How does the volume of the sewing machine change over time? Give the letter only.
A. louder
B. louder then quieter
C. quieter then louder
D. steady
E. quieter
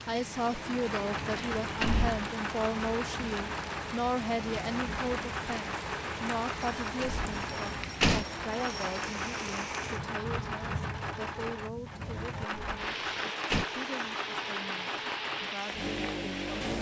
D.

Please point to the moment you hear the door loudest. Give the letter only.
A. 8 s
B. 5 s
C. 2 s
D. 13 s
A.